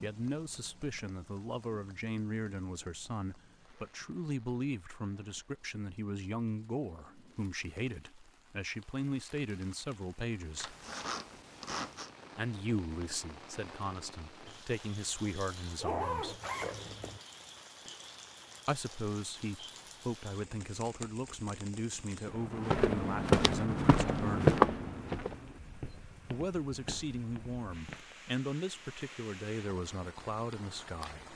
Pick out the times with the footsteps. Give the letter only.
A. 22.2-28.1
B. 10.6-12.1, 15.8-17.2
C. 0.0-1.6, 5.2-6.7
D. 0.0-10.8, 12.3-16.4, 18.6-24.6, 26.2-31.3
A.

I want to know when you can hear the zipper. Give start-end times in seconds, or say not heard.
10.6-12.1, 15.8-17.2.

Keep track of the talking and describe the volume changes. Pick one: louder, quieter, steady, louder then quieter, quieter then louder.
steady.